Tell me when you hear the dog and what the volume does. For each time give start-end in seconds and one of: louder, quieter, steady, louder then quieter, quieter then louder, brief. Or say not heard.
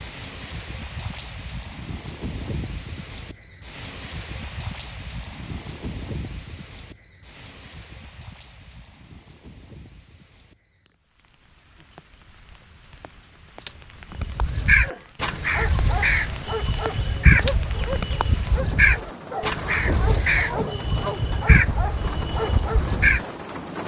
14.8-22.8 steady.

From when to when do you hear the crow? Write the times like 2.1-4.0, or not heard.
14.2-23.2.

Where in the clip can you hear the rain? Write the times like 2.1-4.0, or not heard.
0.0-23.8.